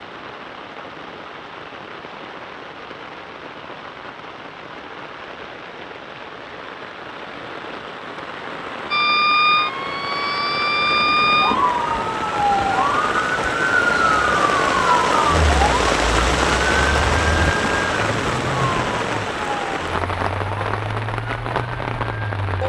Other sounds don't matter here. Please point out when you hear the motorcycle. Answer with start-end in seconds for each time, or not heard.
not heard.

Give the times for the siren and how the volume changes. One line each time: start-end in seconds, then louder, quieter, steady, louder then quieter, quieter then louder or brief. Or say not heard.
8.9-22.6 quieter.